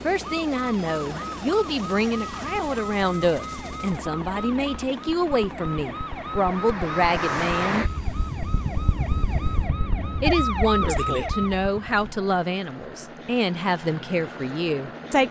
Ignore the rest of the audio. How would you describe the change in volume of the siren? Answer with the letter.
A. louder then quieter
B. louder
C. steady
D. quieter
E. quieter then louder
B.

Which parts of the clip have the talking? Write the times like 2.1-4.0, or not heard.
0.0-7.8, 10.2-15.2.